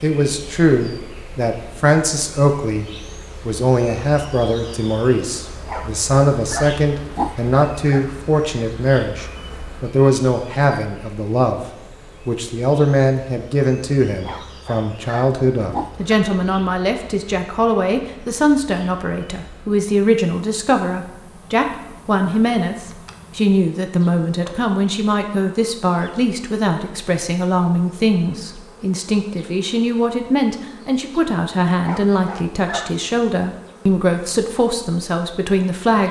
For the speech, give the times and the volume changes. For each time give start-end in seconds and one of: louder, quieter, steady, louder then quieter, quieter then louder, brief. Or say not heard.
0.0-36.0 steady.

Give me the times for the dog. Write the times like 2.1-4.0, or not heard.
5.7-8.1, 14.2-16.1, 31.9-33.0.